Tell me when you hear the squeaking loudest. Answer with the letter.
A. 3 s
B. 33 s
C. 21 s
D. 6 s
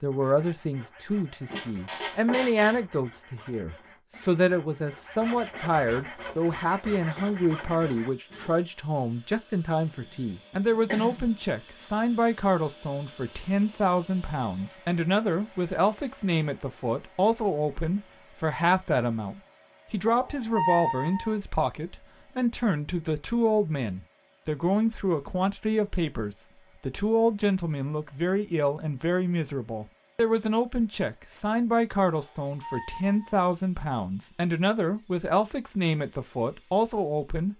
C.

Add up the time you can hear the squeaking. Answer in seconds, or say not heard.
4 s.